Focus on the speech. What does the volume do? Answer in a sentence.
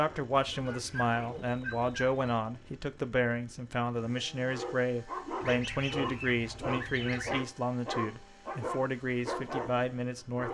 The volume of the speech stays about the same.